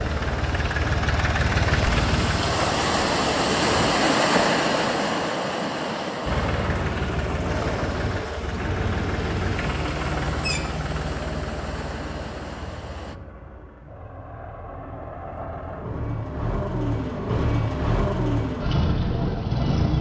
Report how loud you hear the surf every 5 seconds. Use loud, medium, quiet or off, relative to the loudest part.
loud, medium, quiet, off.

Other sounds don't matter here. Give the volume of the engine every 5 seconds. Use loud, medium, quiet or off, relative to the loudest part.
loud, loud, medium, loud.